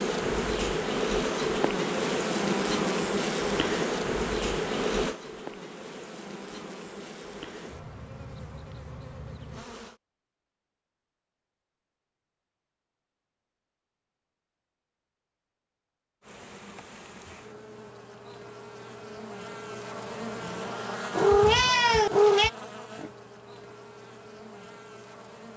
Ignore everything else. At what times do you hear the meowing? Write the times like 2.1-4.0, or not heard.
21.1-22.5.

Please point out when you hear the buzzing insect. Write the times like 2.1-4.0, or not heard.
0.0-10.0, 16.2-25.5.